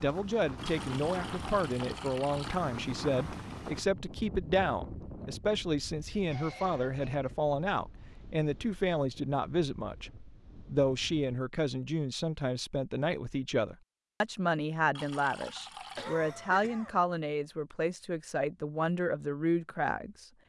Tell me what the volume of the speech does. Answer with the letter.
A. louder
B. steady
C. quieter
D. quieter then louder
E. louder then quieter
B.